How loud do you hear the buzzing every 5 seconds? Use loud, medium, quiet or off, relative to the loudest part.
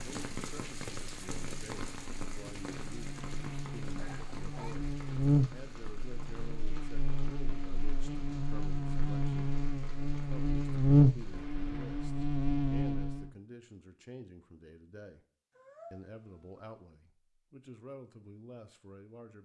quiet, medium, loud, off.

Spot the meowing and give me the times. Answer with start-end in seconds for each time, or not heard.
4.0-4.8, 15.6-16.6.